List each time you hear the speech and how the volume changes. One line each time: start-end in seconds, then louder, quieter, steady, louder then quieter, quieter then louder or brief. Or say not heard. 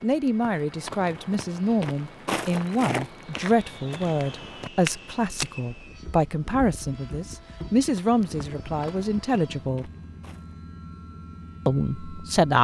0.0-9.9 steady
11.7-12.5 brief.